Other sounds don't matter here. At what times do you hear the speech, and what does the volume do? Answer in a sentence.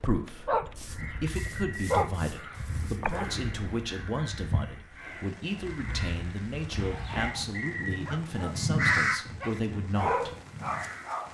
The speech can be heard from 0.0 to 10.3 s, at a steady volume.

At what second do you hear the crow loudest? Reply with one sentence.
The loudest moment of the crow is at 9 seconds.